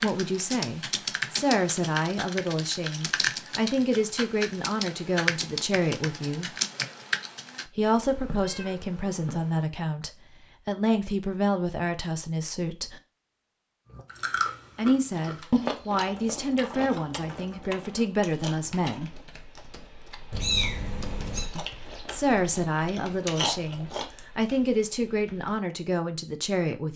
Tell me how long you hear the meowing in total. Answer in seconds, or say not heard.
3 s.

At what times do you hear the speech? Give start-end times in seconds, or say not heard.
0.0-6.5, 7.7-13.0, 14.8-19.2, 21.6-26.9.